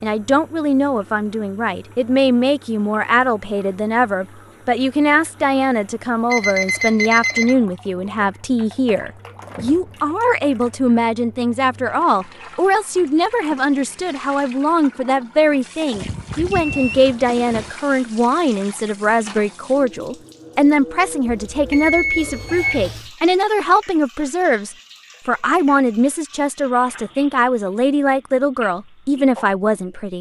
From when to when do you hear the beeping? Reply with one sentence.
You can hear the beeping from 6.3 to 7.5 s, from 15.9 to 17.7 s and from 21.2 to 23.1 s.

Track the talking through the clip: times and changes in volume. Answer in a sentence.
You can hear the talking from 0.0 to 30.1 s, at a steady volume.